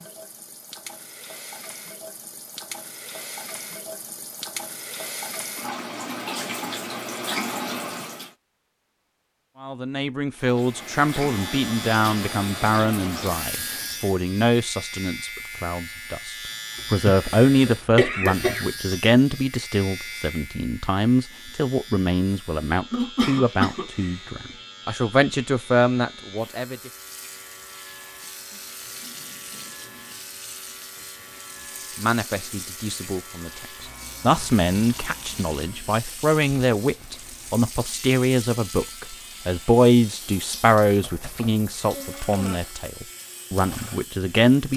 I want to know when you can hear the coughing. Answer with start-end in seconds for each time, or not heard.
17.1-18.6, 22.9-24.2.